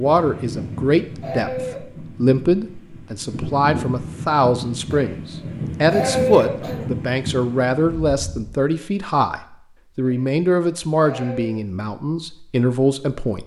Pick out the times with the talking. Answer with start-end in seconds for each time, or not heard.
0.0-13.4.